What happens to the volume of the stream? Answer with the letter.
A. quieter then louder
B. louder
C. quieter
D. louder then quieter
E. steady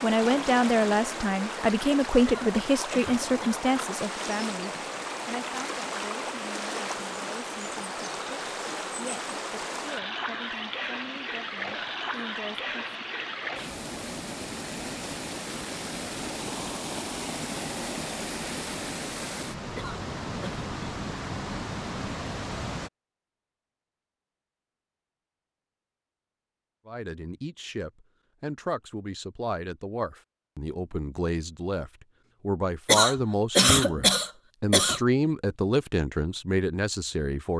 E.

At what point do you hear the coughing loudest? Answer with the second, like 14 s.
34 s.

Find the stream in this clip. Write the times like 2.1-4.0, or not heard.
0.0-22.9.